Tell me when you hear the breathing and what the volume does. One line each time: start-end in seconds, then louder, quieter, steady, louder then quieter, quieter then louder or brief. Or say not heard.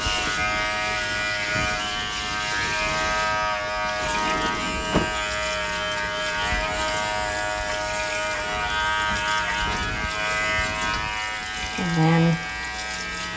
not heard.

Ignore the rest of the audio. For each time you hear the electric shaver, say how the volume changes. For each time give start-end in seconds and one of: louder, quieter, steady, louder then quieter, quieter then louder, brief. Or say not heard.
0.0-13.3 steady.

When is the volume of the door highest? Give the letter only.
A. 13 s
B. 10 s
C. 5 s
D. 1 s
C.